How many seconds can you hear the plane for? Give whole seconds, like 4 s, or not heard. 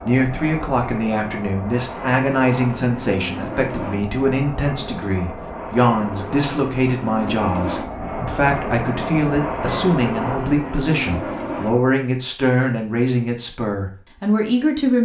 12 s.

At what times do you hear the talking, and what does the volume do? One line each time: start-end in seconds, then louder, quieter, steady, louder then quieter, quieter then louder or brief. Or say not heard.
0.1-15.0 steady.